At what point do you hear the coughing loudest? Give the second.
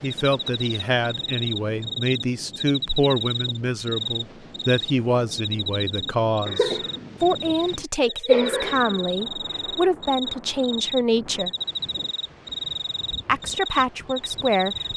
8 s.